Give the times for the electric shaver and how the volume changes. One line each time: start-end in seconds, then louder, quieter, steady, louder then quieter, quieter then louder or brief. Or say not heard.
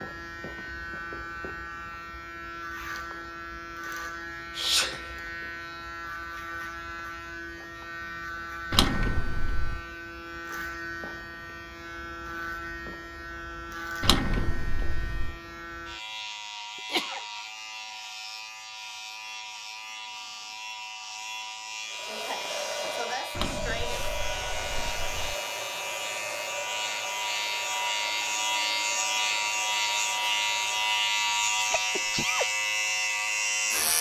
0.0-33.9 louder.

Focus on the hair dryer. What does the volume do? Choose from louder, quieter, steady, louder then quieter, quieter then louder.
quieter.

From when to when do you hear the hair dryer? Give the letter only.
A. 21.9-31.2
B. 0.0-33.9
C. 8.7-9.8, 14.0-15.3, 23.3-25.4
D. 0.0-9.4
A.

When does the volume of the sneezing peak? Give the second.
5 s.